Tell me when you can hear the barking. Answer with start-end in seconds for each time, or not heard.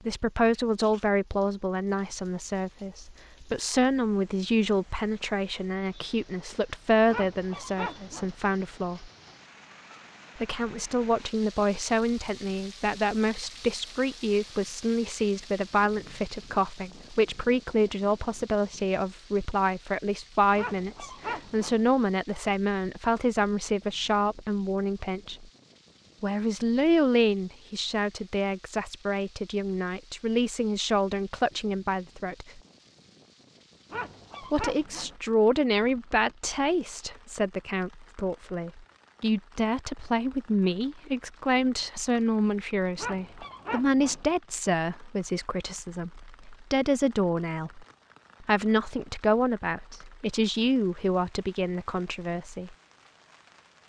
7.1-8.3, 20.6-21.8, 33.9-35.1, 43.0-44.2.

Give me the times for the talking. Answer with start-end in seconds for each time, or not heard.
0.1-9.1, 10.4-25.4, 26.2-32.6, 34.4-52.8.